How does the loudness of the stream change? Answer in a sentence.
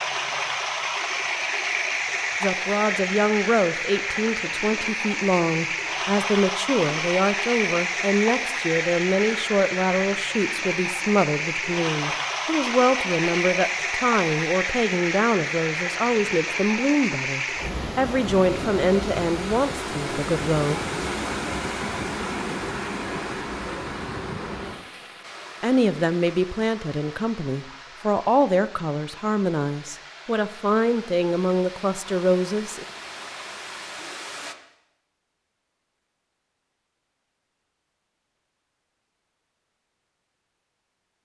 The volume of the stream goes down.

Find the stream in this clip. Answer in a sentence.
You can hear the stream from 0.0 to 34.5 s.